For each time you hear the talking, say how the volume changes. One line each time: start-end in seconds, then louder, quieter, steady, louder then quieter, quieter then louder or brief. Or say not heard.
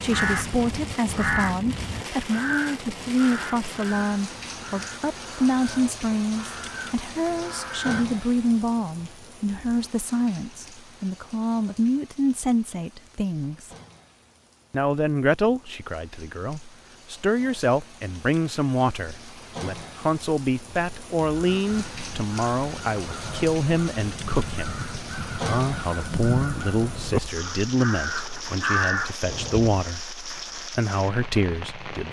0.0-13.8 steady
14.7-32.0 steady.